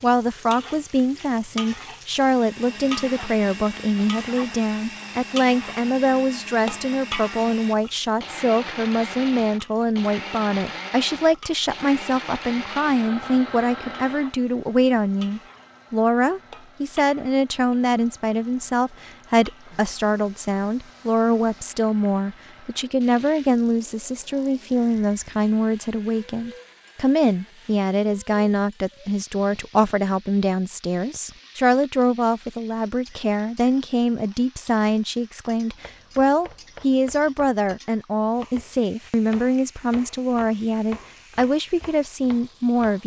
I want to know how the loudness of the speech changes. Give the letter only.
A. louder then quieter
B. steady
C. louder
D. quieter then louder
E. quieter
B.